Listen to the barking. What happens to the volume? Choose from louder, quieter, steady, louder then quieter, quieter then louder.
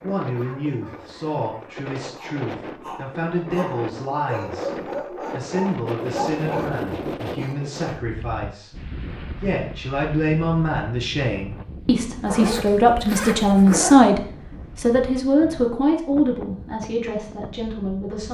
louder.